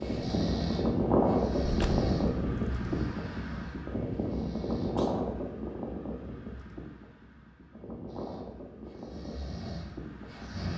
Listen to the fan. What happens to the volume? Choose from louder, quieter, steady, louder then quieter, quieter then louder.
quieter.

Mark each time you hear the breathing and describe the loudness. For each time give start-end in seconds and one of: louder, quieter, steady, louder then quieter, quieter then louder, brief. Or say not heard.
0.0-5.2 quieter
8.1-10.7 brief.